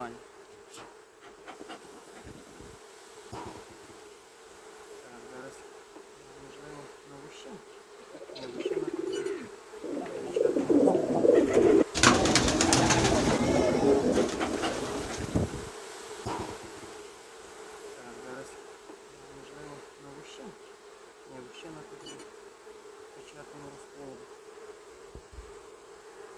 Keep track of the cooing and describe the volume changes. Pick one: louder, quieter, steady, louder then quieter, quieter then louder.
louder then quieter.